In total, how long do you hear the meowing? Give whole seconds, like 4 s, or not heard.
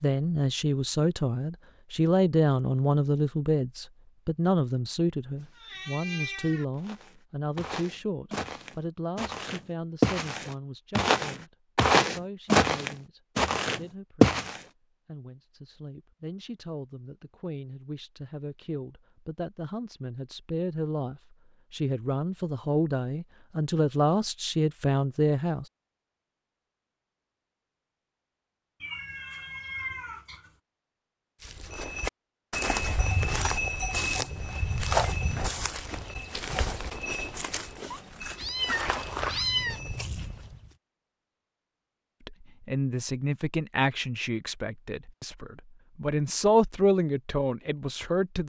5 s.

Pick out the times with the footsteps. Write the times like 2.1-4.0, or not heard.
6.8-14.6, 31.4-40.8.